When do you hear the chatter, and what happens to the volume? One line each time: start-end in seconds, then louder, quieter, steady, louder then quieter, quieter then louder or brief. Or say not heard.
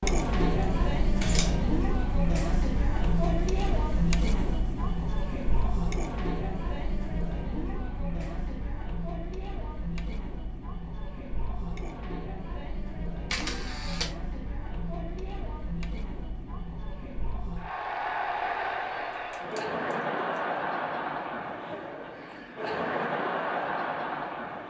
0.0-24.6 quieter then louder.